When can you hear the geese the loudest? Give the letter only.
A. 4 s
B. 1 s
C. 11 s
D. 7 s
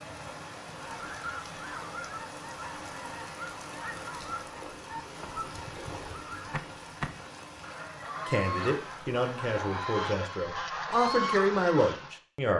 C.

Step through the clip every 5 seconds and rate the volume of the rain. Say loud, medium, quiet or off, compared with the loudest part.
loud, loud, off.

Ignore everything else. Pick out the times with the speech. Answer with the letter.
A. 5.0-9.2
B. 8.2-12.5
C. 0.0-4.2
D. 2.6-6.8
B.